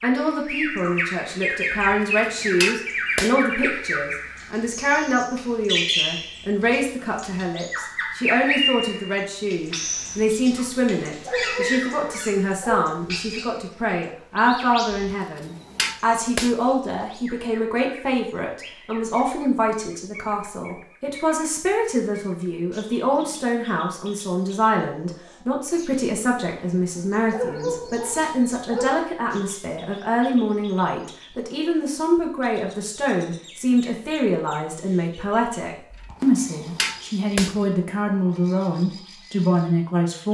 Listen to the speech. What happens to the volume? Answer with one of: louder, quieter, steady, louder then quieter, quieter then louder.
steady.